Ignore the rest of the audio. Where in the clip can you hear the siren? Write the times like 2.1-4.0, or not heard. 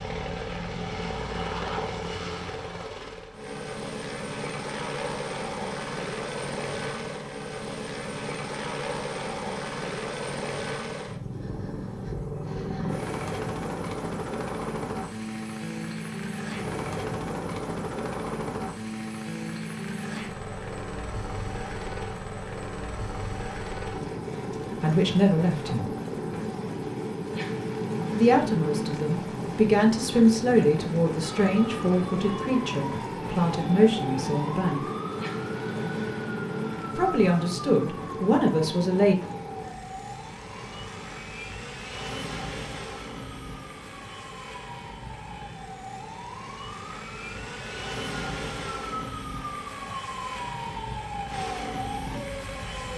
31.2-52.9.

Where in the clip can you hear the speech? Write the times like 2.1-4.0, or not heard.
24.8-25.9, 28.1-34.9, 37.0-39.1.